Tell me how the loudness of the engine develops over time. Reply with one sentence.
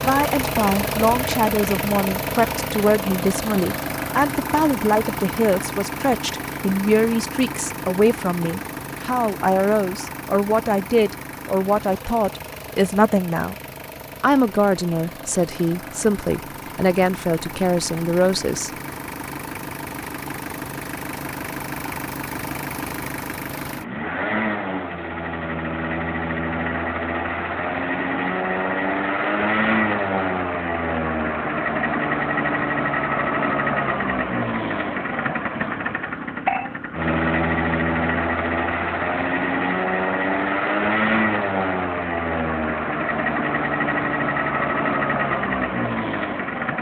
The volume of the engine goes down, then up.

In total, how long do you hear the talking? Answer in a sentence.
You can hear the talking for 18 seconds altogether.